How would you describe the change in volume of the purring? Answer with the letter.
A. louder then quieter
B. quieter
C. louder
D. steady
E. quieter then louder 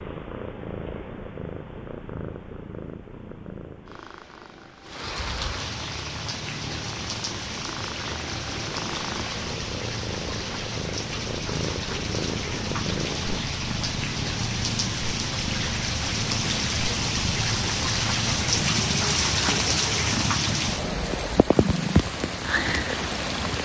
C.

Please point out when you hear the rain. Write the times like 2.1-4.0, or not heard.
4.8-23.5.